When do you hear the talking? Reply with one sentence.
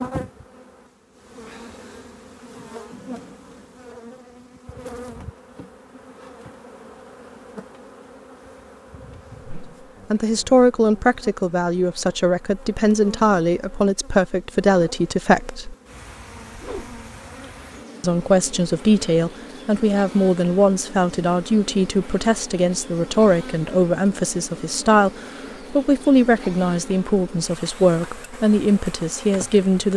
The talking can be heard from 10.1 to 15.8 s and from 18.0 to 29.9 s.